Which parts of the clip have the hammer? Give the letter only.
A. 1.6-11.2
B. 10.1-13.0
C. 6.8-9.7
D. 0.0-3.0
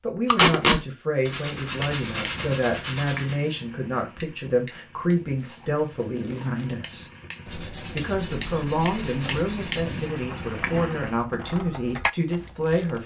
A.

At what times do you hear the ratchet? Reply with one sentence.
The ratchet can be heard from 10.1 to 13.0 s.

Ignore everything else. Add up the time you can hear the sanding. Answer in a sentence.
The sanding can be heard for 5 seconds in total.